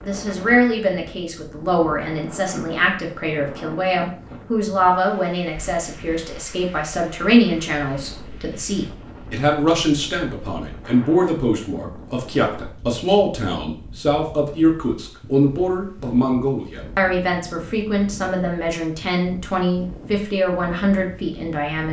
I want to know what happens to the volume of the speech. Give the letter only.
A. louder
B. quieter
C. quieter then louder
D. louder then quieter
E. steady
E.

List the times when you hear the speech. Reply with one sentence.
You can hear the speech from 0.0 to 21.8 s.